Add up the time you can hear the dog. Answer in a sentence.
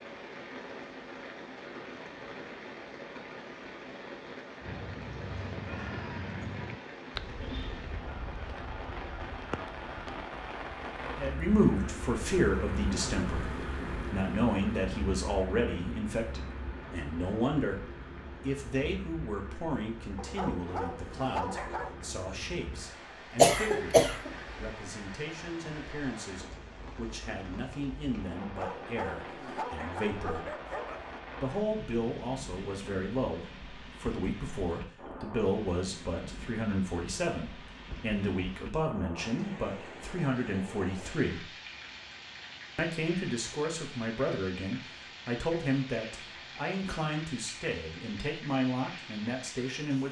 You can hear the dog for 5 seconds altogether.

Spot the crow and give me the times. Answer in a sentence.
The crow can be heard from 4.6 to 10.3 s.